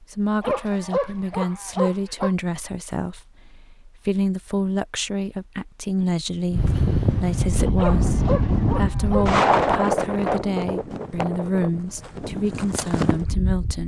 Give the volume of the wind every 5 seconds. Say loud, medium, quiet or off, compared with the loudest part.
off, loud, medium.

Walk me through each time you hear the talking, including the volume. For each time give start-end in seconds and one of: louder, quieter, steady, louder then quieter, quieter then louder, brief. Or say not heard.
0.0-13.8 steady.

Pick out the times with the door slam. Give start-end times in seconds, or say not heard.
not heard.